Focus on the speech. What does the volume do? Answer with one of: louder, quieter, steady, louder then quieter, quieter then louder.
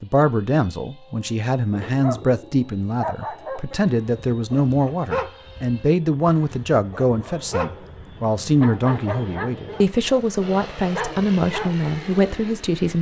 steady.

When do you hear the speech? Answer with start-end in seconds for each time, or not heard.
0.0-12.9.